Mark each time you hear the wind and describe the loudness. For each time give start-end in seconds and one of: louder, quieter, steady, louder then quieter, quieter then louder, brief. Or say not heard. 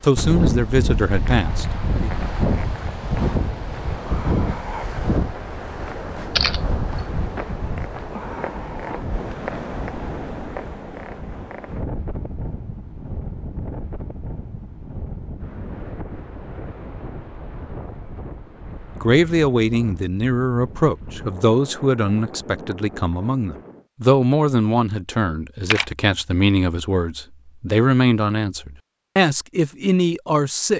0.1-23.9 quieter.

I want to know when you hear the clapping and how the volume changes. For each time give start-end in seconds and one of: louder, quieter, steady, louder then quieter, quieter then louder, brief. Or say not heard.
not heard.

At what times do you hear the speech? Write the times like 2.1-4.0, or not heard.
0.0-2.1, 19.0-30.7.